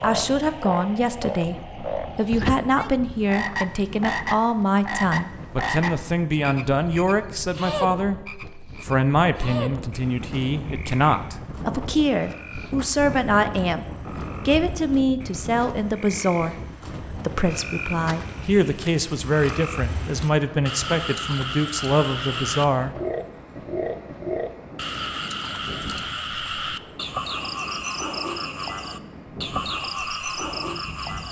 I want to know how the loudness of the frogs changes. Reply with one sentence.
The loudness of the frogs goes down, then up.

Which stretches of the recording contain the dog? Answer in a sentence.
The dog can't be heard in this clip.